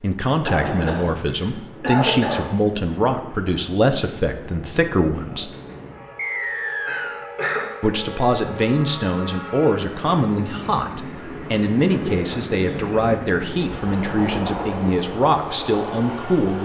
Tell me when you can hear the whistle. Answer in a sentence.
The whistle can be heard from 6.2 to 7.3 s.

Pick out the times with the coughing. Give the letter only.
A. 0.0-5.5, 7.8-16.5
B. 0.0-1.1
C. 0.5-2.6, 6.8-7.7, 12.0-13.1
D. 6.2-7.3
C.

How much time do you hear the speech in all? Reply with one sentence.
The speech can be heard for 14 seconds in total.